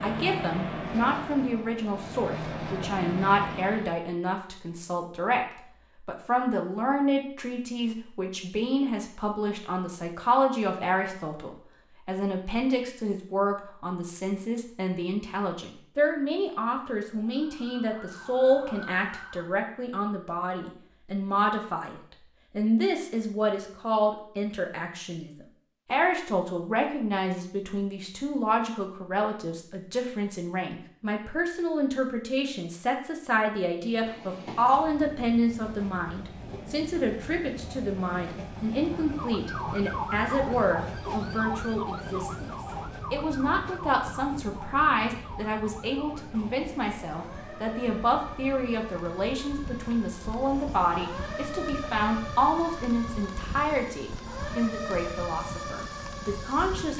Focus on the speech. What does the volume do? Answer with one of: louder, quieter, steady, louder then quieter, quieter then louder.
steady.